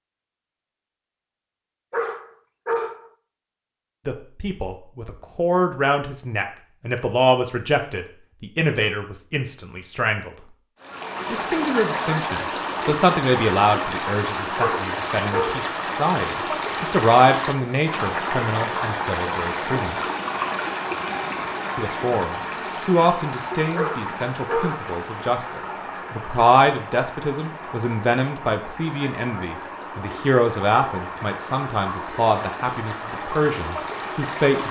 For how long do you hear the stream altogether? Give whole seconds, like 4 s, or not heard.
24 s.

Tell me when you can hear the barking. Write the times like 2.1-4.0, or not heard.
1.9-3.0, 14.6-15.7, 23.8-24.9.